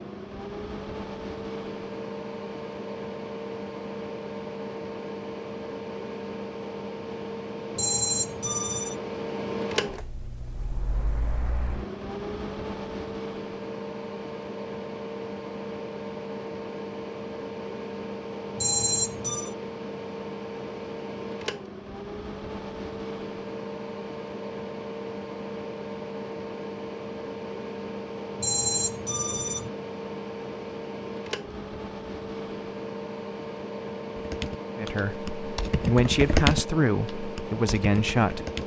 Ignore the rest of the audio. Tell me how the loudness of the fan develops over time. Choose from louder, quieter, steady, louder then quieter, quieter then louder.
steady.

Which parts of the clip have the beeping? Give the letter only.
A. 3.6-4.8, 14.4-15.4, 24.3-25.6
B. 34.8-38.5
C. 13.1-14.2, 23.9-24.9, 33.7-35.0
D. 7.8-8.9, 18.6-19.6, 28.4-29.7
D.